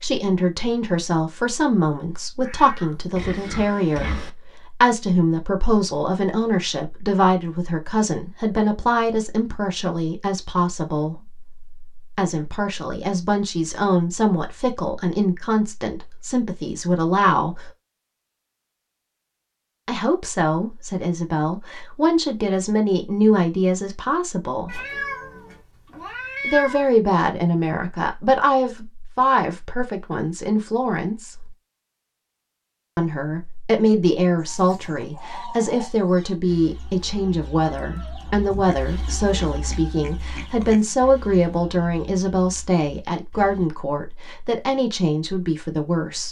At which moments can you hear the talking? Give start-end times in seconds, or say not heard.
0.0-17.7, 19.9-24.8, 26.4-31.6, 33.0-46.2.